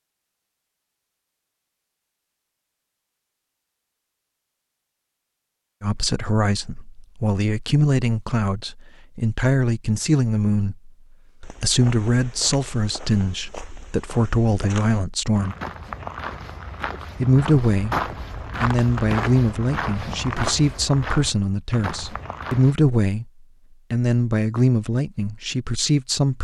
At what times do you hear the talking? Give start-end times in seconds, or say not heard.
5.8-15.6, 17.2-17.9, 18.6-23.2, 23.9-26.4.